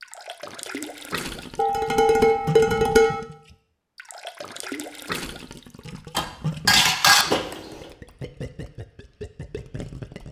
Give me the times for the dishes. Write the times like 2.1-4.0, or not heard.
1.6-3.2, 6.2-7.8.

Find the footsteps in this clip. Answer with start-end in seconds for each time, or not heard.
not heard.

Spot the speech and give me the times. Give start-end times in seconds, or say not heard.
not heard.